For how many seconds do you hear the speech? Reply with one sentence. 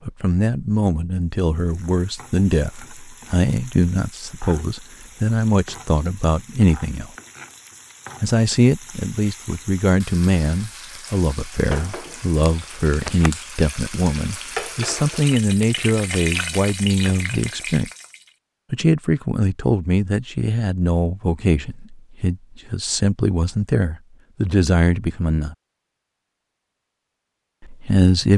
The speech can be heard for 24 seconds in total.